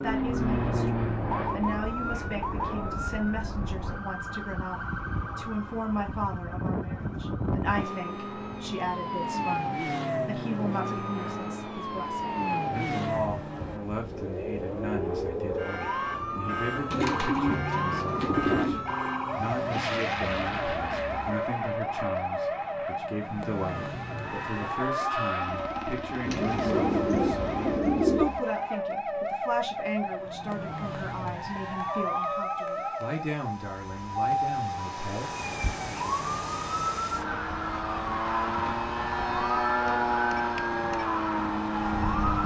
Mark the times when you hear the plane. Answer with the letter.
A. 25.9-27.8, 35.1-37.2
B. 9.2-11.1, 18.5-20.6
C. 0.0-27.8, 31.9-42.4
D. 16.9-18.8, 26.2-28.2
C.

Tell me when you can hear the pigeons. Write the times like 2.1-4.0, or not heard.
16.9-18.8, 26.2-28.2.